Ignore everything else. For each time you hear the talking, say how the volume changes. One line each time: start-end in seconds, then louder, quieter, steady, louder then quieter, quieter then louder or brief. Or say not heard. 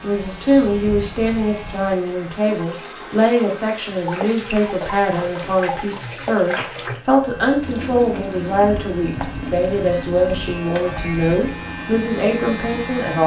0.0-13.2 steady.